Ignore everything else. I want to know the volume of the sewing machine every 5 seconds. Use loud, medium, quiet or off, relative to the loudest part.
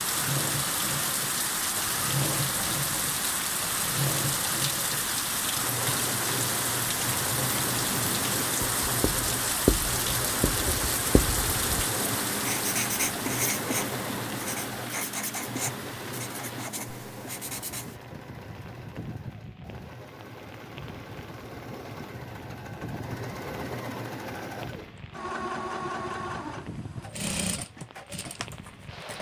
loud, loud, loud, medium, medium, loud.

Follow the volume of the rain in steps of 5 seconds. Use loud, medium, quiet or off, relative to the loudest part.
loud, loud, loud, quiet, quiet, quiet.